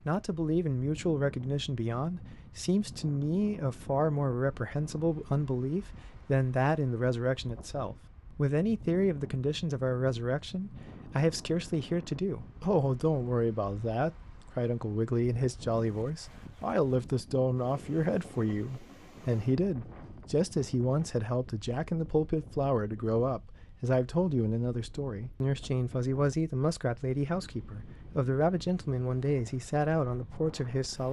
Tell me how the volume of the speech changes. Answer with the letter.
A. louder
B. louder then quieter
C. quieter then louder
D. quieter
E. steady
E.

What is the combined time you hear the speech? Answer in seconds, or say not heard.
31 s.